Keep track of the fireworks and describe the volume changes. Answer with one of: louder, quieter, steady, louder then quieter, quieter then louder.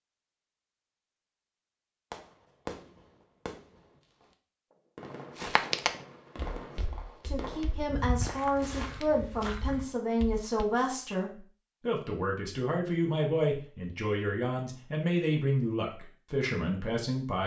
quieter then louder.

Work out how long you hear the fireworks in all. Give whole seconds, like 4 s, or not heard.
7 s.